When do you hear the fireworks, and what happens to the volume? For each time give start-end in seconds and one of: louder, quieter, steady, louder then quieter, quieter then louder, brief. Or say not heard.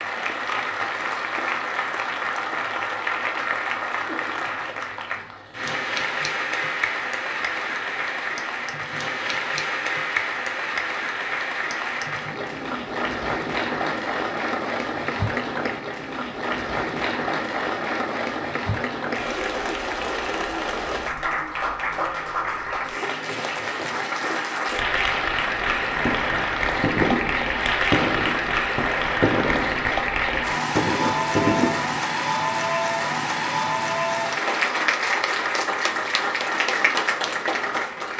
26.0-32.0 quieter then louder.